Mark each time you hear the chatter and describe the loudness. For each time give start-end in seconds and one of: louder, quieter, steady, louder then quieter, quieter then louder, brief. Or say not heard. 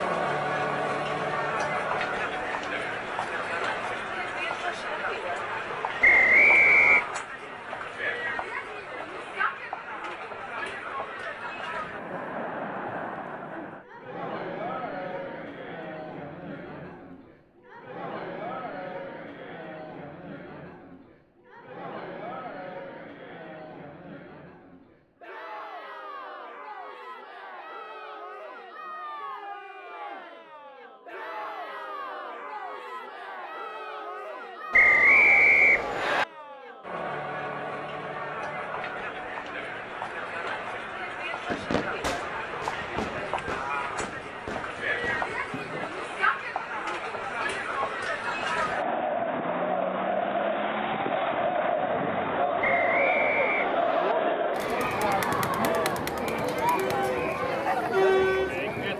0.0-58.9 quieter then louder.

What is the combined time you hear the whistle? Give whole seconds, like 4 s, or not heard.
4 s.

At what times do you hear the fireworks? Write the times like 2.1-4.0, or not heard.
41.5-45.9.